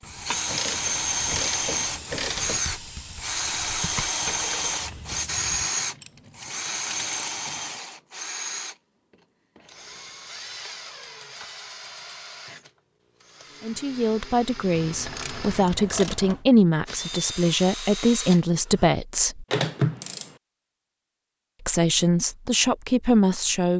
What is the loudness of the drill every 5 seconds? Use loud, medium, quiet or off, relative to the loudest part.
loud, loud, quiet, medium, off.